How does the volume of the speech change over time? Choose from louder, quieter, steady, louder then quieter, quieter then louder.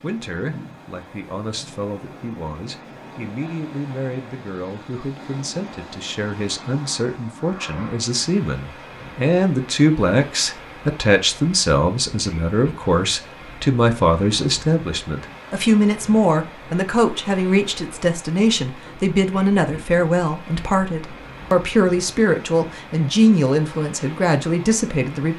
louder.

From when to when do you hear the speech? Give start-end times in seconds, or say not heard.
0.0-25.3.